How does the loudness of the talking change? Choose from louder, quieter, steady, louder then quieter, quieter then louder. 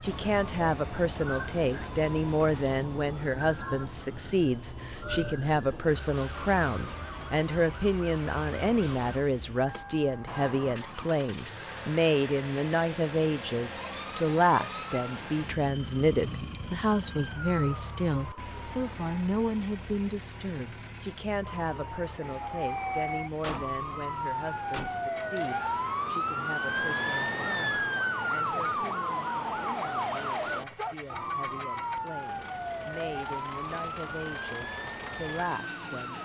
quieter.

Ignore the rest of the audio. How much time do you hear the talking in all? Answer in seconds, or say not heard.
36 s.